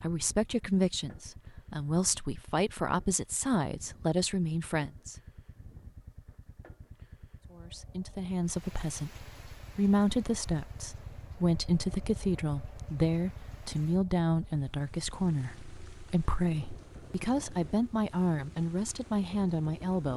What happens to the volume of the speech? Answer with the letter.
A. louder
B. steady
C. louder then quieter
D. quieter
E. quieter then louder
B.